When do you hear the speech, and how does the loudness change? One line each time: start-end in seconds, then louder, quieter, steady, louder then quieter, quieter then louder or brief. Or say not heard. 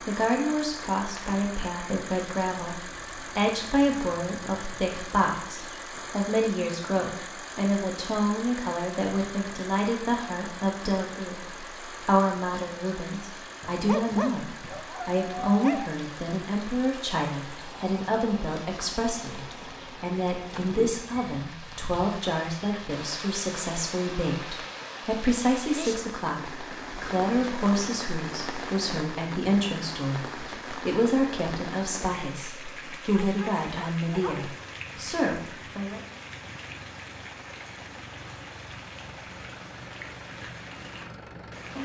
0.1-36.0 steady.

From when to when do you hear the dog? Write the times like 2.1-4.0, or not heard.
13.8-15.9, 33.1-34.5.